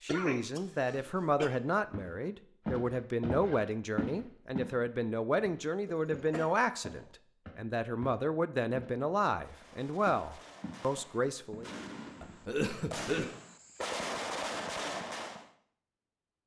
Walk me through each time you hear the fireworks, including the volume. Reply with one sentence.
You can hear the fireworks from 9.4 to 15.5 s, getting louder.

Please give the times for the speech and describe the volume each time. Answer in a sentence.
The speech can be heard from 0.0 to 11.7 s, at a steady volume.